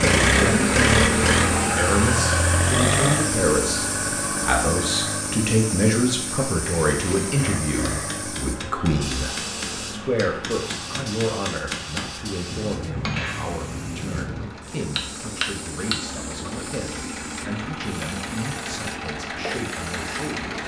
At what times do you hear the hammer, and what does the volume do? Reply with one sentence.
You can hear the hammer from 6.8 to 16.0 s, getting louder.